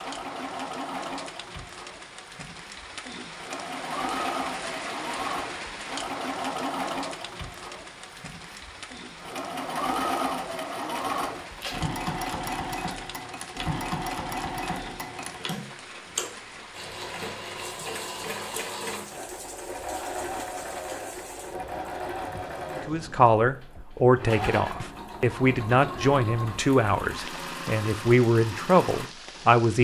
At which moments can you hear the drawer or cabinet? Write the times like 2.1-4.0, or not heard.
not heard.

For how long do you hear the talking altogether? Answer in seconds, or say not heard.
7 s.